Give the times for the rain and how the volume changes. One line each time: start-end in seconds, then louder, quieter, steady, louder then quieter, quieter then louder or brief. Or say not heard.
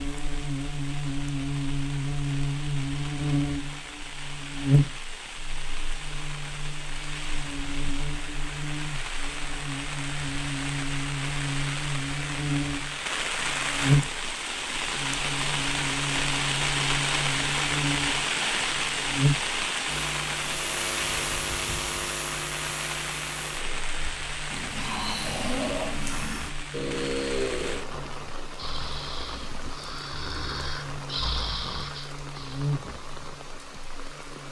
0.0-34.4 louder then quieter.